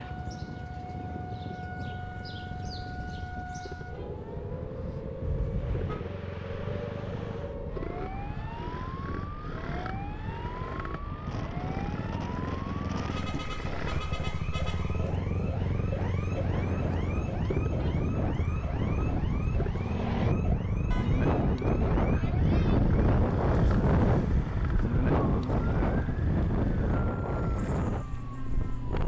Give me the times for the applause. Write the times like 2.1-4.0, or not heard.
not heard.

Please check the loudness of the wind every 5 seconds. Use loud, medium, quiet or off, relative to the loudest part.
quiet, quiet, quiet, medium, loud, loud.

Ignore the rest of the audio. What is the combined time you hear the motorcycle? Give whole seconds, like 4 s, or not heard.
29 s.